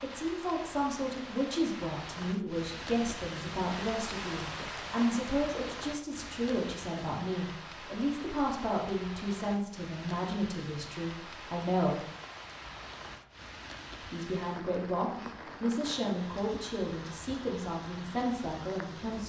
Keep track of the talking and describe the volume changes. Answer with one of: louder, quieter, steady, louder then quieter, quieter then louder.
steady.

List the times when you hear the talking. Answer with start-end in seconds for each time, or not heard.
0.0-12.1, 14.0-19.2.